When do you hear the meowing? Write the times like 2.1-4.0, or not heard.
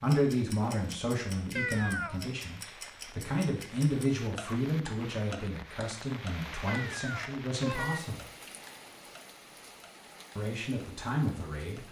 1.6-2.3, 6.7-8.0.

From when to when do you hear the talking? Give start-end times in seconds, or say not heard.
0.0-8.2, 10.3-11.8.